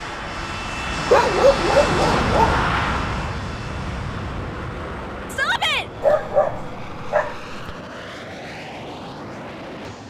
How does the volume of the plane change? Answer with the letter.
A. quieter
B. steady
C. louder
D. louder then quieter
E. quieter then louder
A.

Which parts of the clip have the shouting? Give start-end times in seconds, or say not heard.
5.3-5.9.